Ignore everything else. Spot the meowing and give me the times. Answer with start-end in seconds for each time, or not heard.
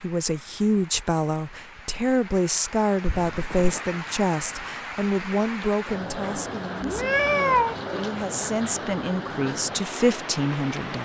3.0-3.8, 6.8-7.8.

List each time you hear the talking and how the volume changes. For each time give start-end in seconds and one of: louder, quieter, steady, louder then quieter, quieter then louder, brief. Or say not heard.
0.0-10.9 quieter then louder.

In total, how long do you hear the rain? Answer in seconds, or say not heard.
11 s.